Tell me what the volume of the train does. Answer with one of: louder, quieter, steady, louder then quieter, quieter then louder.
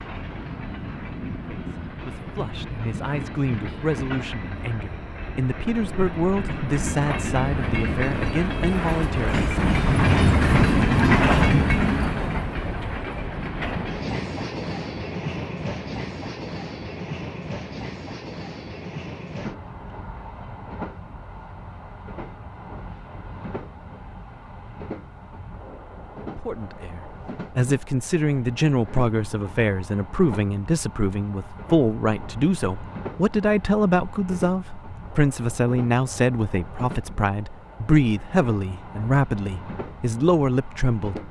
louder then quieter.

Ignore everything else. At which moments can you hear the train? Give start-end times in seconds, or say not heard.
0.0-41.2.